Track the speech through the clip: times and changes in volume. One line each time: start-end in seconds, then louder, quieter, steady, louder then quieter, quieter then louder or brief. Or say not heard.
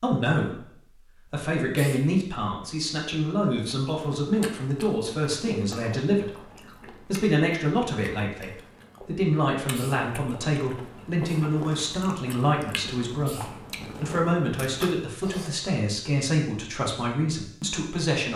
0.0-0.7 brief
1.3-18.3 steady.